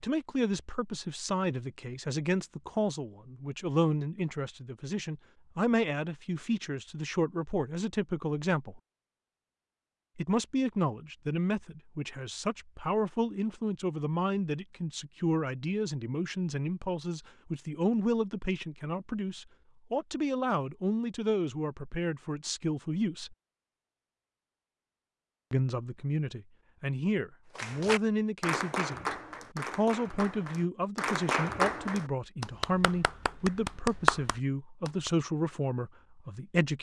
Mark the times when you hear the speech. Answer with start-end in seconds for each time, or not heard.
0.0-8.8, 10.2-23.4, 25.5-36.7.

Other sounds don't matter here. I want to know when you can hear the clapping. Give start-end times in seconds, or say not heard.
27.6-35.1.